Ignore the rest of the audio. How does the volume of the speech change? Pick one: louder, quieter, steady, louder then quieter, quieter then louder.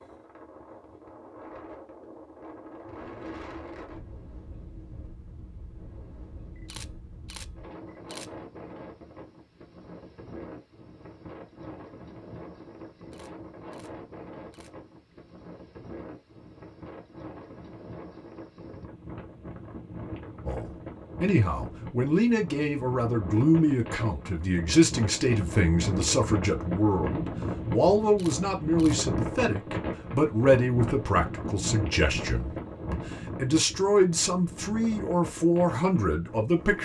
steady.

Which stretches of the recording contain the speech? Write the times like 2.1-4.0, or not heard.
20.4-36.8.